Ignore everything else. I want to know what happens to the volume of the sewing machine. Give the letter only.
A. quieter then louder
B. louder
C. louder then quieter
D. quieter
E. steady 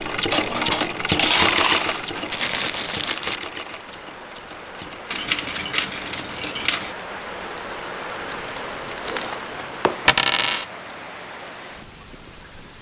D.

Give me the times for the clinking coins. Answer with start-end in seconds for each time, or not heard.
0.3-2.5, 5.1-7.0, 10.1-10.7.